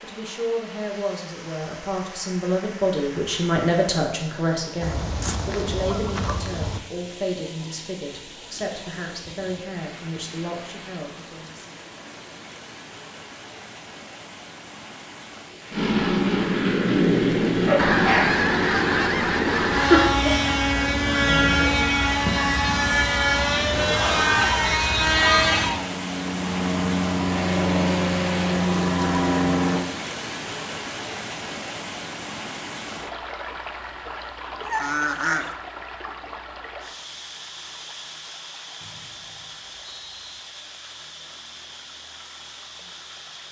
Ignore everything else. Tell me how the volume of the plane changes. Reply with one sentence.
The loudness of the plane stays about the same.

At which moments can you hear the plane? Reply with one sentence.
You can hear the plane from 15.7 to 29.9 s.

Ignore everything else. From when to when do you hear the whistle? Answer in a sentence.
The whistle can be heard from 38.8 to 40.4 s.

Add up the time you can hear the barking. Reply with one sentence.
The barking can't be heard in this clip.